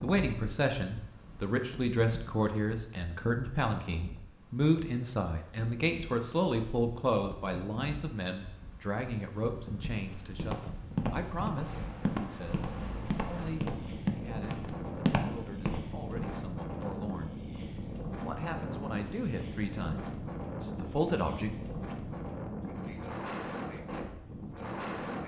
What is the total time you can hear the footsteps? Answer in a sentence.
The footsteps can be heard for 7 seconds in total.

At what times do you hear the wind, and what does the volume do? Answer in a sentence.
The wind can be heard from 0.0 to 25.2 s, getting louder.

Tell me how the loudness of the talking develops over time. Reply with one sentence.
The volume of the talking goes down, then up.